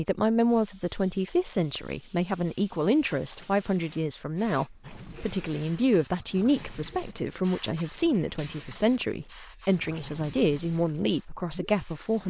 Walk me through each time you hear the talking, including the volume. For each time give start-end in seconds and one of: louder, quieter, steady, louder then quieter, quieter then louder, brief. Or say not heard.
0.0-12.2 steady.